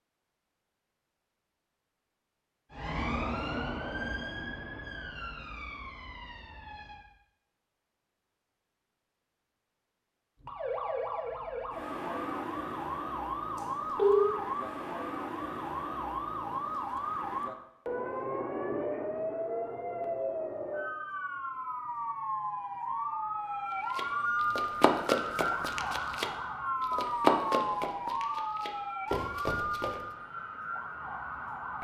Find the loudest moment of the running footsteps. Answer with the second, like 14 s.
27 s.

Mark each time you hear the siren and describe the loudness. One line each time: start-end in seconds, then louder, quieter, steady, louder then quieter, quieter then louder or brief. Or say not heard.
2.7-7.1 quieter
10.4-31.7 steady.